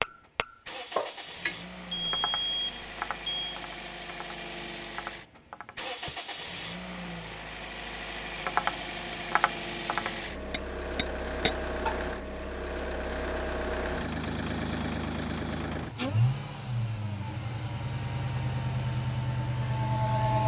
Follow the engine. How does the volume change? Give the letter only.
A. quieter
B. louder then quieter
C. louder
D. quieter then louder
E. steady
C.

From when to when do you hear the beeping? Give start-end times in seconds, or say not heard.
1.9-3.6.